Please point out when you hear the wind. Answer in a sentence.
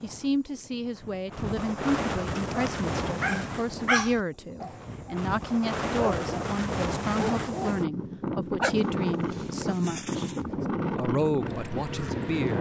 The wind can be heard from 0.0 to 12.5 s.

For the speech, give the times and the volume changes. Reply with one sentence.
The speech can be heard from 0.0 to 12.5 s, at a steady volume.